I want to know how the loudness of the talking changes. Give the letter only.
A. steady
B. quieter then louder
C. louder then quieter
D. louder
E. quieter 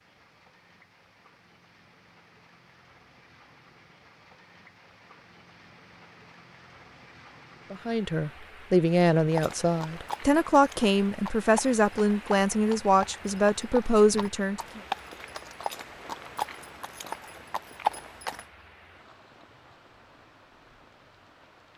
A.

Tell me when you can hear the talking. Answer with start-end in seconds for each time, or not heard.
7.7-14.8.